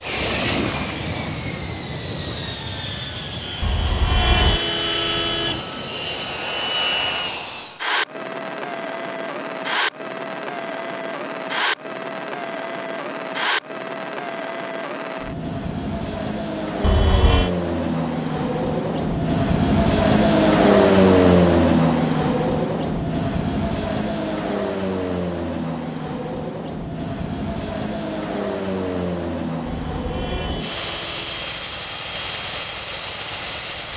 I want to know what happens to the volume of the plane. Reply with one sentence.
The volume of the plane goes up, then down.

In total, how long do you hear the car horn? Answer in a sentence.
The car horn can be heard for 4 seconds in total.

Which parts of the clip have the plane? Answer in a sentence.
The plane can be heard from 0.0 to 33.9 s.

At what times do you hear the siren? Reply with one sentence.
The siren can't be heard in this clip.